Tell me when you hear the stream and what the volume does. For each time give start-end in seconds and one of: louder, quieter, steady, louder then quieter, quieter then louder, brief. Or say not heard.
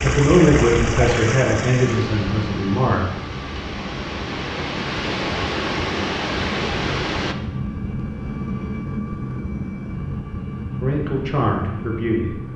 0.0-7.3 quieter then louder.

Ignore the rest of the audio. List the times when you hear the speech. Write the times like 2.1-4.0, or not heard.
0.0-3.0, 10.8-12.3.